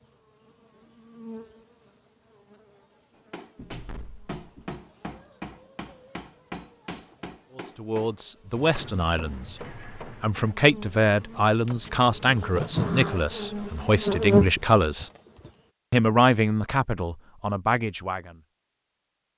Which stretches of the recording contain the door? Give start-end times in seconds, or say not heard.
3.5-4.8, 11.7-13.2.